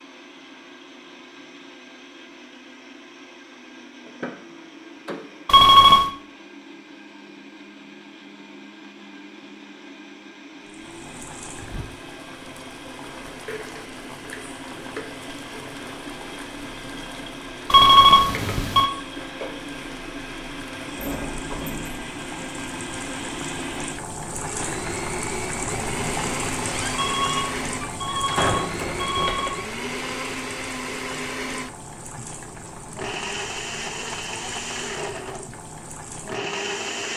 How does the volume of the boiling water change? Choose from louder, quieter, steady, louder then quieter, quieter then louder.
louder then quieter.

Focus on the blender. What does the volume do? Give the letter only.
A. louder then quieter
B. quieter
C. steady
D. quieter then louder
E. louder
E.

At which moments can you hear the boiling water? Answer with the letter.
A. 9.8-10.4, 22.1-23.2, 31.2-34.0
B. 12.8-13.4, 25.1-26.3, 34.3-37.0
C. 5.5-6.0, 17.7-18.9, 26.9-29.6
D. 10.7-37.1
D.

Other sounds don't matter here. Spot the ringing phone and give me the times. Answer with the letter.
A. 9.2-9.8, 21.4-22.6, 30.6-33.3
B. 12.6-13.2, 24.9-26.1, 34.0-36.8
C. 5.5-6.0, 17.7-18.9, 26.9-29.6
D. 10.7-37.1
C.